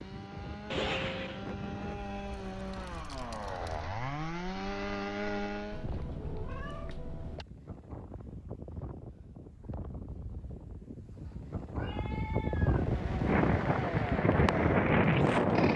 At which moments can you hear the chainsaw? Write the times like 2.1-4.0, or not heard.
0.0-5.9, 12.6-15.7.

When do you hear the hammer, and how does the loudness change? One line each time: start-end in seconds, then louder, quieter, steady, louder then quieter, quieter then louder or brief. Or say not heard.
not heard.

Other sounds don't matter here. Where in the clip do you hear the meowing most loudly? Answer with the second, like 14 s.
1 s.